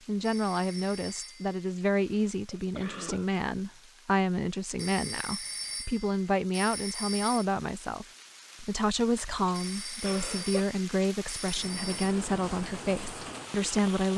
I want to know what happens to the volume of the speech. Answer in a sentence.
The loudness of the speech stays about the same.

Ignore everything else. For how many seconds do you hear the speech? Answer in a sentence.
You can hear the speech for 14 seconds altogether.